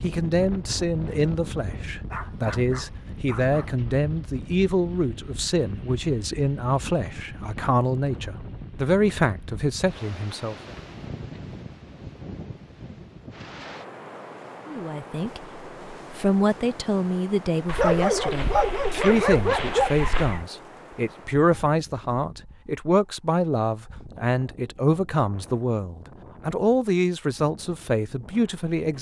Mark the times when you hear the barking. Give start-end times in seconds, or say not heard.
2.1-3.8, 17.6-20.4.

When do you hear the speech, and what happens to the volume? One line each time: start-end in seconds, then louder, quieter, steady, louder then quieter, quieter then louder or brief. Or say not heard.
0.0-10.6 steady
14.7-28.9 steady.